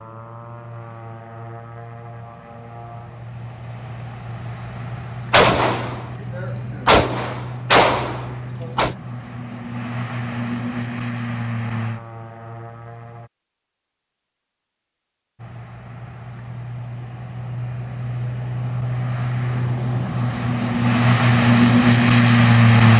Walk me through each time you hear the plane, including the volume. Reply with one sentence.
The plane can be heard from 0.0 to 13.3 s, getting louder; and from 15.4 to 22.9 s, getting louder.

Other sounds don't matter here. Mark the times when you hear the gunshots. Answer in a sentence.
You can hear the gunshots from 5.3 to 8.9 s.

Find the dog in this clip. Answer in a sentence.
The dog can't be heard in this clip.